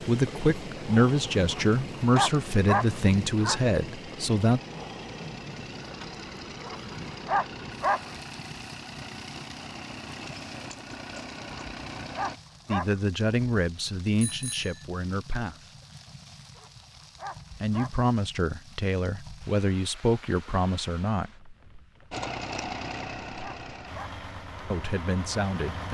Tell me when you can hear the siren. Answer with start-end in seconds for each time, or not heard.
not heard.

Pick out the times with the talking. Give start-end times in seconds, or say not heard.
0.1-4.6, 12.7-15.7, 17.6-21.5, 24.7-25.8.